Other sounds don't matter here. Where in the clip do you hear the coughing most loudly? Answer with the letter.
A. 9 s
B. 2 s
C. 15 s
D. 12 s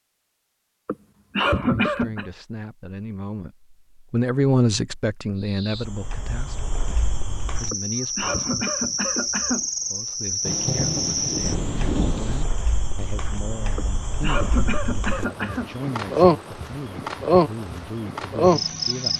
B.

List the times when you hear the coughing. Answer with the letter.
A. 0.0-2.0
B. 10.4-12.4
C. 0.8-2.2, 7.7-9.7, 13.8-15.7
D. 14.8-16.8
C.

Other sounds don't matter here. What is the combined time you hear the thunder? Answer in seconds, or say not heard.
2 s.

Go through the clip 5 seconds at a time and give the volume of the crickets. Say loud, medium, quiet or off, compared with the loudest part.
off, medium, medium, loud.